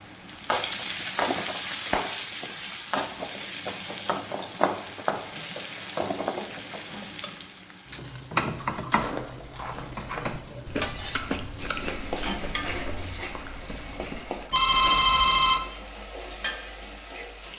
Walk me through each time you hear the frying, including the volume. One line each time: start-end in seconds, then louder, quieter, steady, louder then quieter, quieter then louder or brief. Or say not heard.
0.0-17.5 quieter.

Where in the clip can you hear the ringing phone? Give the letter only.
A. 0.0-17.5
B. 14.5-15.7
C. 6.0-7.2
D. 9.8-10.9
B.